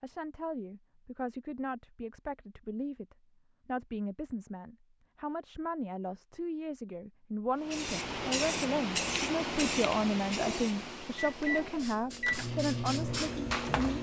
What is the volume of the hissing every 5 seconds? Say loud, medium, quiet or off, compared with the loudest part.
off, loud, medium.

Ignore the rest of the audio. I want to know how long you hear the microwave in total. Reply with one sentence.
You can hear the microwave for 3 seconds altogether.